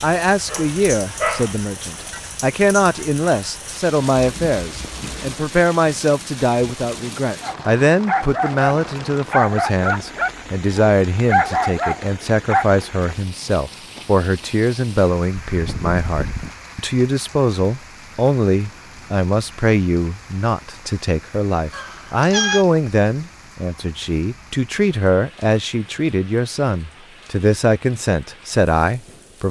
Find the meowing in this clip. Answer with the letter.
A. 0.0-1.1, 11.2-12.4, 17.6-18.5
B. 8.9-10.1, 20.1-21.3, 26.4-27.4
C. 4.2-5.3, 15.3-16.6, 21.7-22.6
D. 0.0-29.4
C.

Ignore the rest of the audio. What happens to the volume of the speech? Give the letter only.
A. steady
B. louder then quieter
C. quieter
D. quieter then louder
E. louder
A.